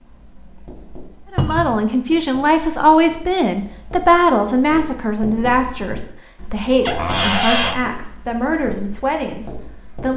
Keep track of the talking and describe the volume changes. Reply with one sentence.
The loudness of the talking goes down.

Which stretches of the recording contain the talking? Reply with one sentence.
The talking can be heard from 1.3 to 10.1 s.